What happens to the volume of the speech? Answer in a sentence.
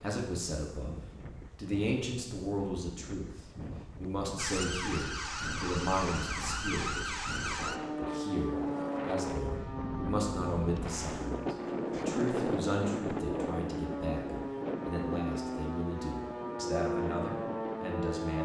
The volume of the speech stays about the same.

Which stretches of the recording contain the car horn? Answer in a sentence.
You can't hear the car horn here.